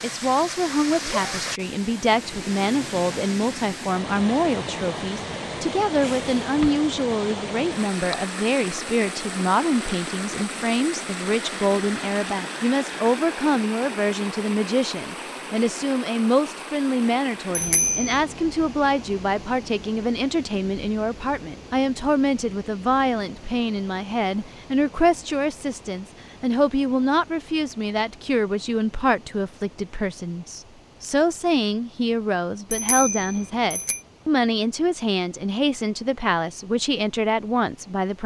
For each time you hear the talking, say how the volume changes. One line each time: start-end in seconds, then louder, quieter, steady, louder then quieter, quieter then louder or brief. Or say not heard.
0.0-38.2 steady.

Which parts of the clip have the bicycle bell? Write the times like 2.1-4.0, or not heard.
6.0-6.8, 17.5-18.2, 32.7-34.0.